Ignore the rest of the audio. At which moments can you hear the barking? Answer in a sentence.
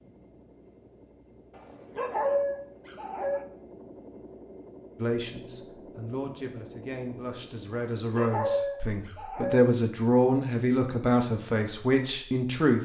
The barking can be heard from 1.6 to 3.5 s and from 8.0 to 9.7 s.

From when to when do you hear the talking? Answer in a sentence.
You can hear the talking from 5.0 to 12.8 s.